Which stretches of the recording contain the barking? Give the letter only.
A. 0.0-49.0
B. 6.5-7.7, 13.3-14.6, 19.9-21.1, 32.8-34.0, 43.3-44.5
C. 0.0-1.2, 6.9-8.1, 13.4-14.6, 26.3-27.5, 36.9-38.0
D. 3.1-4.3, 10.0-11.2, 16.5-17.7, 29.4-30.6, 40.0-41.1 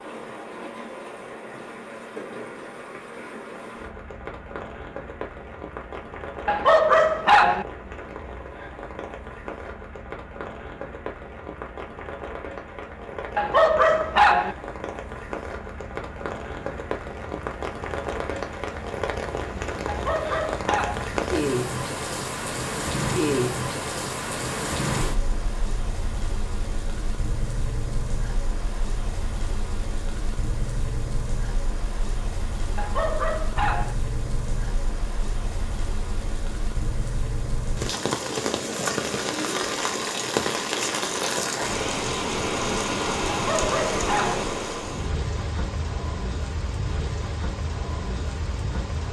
B.